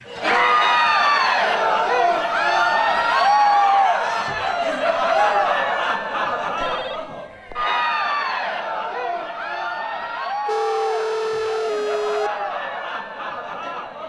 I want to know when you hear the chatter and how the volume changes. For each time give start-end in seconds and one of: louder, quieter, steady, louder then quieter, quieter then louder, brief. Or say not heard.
0.1-14.0 quieter.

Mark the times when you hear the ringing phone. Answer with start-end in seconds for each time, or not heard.
0.8-1.8, 6.6-7.7, 10.4-12.3.